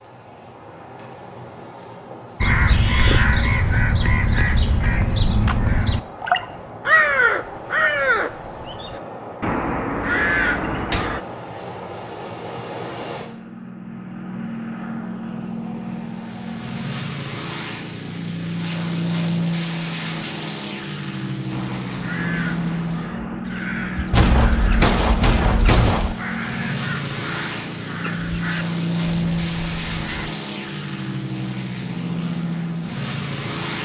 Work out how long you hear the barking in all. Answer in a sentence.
You can't hear the barking here.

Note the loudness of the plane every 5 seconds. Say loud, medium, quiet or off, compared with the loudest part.
quiet, medium, medium, loud, loud, loud, loud.